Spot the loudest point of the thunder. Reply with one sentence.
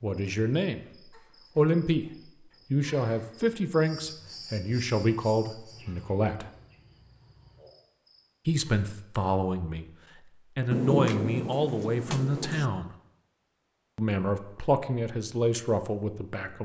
The volume of the thunder peaks at 11 seconds.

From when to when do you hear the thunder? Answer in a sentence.
The thunder can be heard from 10.7 to 12.7 s.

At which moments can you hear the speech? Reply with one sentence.
The speech can be heard from 0.0 to 0.8 s, from 1.6 to 2.0 s, from 2.7 to 6.5 s, from 8.4 to 9.9 s, from 10.6 to 12.9 s and from 13.9 to 16.6 s.